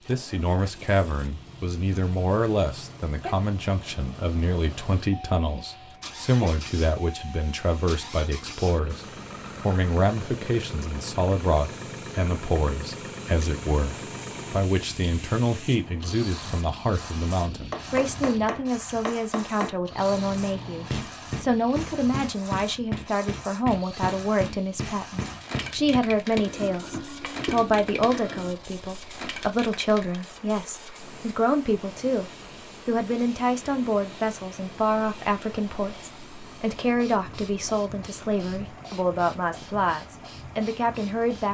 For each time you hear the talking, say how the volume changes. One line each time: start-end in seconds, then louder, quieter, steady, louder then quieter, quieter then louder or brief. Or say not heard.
0.1-41.4 steady.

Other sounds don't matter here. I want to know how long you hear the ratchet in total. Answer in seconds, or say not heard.
not heard.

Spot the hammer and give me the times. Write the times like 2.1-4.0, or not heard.
17.7-28.6.